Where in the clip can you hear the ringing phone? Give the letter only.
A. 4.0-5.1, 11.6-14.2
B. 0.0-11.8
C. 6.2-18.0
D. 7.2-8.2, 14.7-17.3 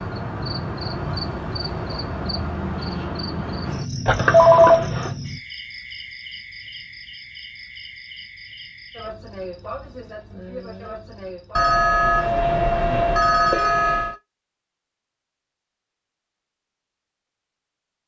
A.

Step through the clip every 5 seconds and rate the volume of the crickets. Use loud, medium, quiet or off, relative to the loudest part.
loud, medium, medium, off.